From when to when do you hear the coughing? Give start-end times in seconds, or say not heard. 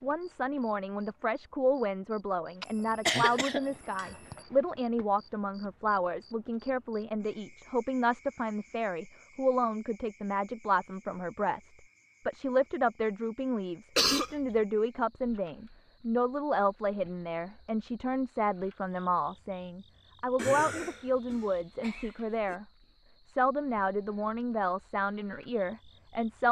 2.6-4.4, 13.9-14.3, 20.4-22.6.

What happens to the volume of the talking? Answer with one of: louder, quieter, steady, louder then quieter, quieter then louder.
steady.